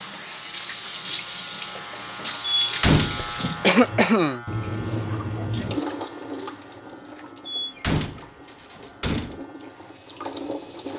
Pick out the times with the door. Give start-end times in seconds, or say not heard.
2.6-3.8, 7.5-9.4.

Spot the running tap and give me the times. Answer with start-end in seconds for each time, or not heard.
0.0-10.9.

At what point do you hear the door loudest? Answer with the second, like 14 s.
3 s.